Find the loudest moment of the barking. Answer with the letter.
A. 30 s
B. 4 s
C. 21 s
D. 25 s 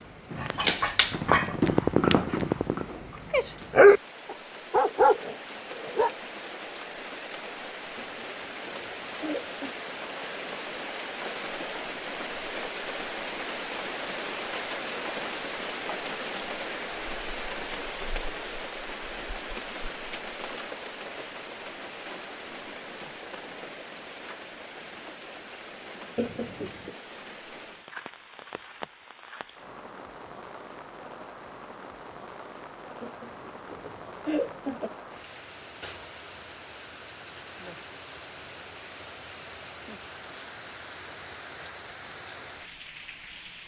B.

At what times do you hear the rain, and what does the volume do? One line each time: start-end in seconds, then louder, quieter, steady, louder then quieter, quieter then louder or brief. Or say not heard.
0.0-43.6 louder then quieter.